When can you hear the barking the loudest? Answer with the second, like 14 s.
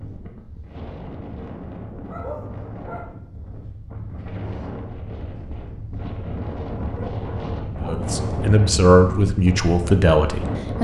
2 s.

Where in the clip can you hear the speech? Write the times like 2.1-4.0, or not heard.
7.8-10.8.